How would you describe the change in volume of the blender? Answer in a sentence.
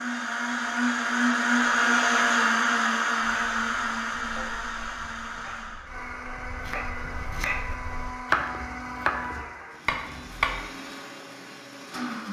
The volume of the blender goes down.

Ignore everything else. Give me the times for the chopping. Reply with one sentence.
You can hear the chopping from 3.2 to 10.7 s.